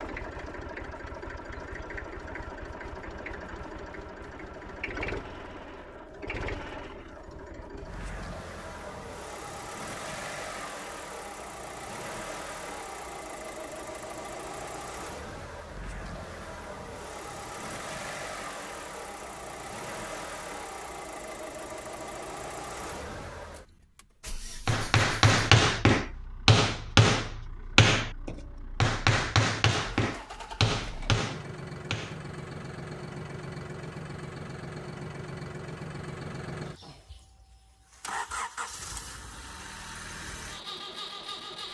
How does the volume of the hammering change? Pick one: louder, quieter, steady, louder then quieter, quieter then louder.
quieter.